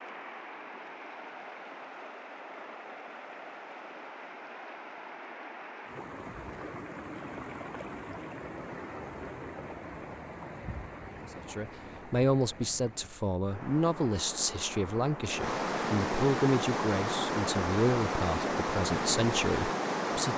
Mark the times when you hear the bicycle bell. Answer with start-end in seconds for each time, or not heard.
not heard.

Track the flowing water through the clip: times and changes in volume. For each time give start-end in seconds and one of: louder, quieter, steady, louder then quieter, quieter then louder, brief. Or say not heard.
0.0-20.3 louder.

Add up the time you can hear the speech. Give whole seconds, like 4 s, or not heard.
9 s.